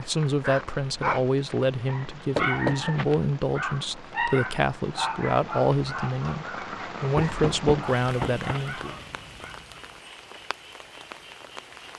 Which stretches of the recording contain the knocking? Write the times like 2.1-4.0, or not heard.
2.4-3.0, 7.2-8.4.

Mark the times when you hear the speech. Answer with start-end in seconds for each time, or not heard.
0.0-9.0.